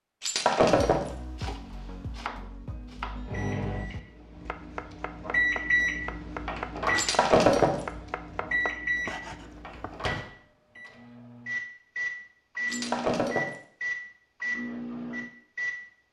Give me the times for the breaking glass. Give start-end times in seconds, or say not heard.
0.2-1.1, 7.0-7.8, 12.7-13.6.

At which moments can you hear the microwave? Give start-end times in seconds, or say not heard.
3.2-15.8.